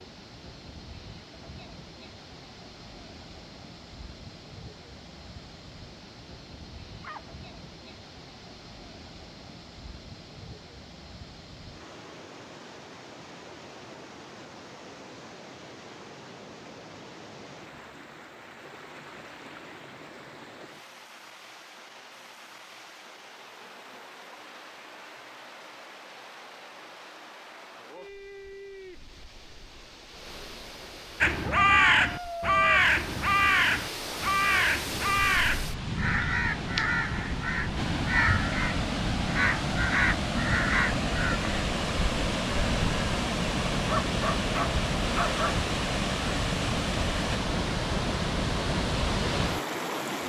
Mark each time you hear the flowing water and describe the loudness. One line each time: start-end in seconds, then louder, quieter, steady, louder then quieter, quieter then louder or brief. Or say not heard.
0.0-50.2 louder.